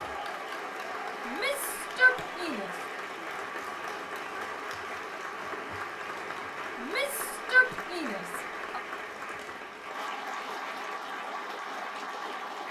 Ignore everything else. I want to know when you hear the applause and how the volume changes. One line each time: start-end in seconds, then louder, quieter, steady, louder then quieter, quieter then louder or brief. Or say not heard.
0.0-12.6 steady.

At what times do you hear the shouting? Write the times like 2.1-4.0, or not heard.
1.2-2.7, 6.8-8.8.